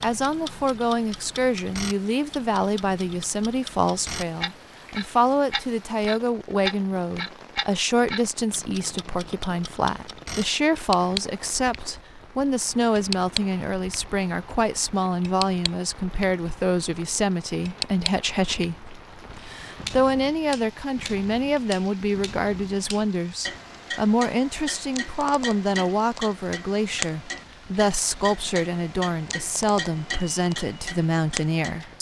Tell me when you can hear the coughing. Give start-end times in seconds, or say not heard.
not heard.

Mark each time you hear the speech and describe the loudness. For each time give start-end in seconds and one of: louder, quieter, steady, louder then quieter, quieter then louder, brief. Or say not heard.
0.0-31.9 steady.